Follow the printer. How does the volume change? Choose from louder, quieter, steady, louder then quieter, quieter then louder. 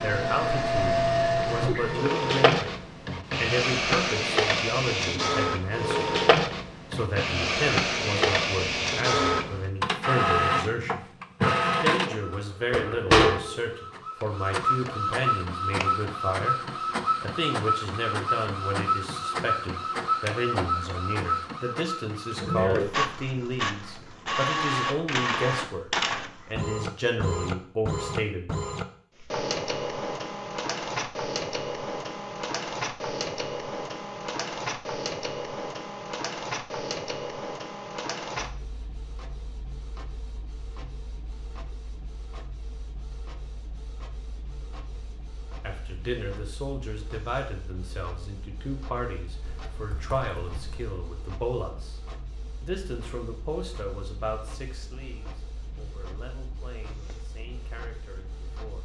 quieter.